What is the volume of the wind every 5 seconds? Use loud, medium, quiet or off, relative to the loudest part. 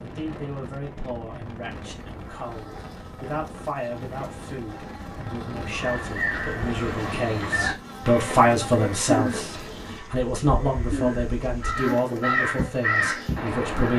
loud, loud, off.